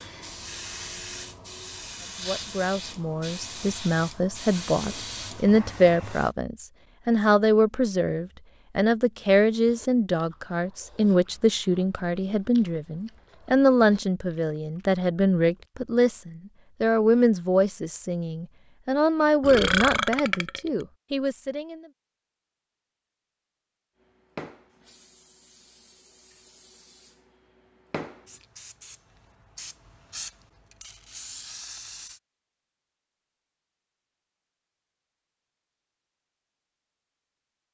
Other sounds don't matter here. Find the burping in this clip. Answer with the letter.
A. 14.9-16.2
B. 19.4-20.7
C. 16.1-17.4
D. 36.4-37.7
B.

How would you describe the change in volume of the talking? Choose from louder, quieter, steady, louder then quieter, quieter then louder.
steady.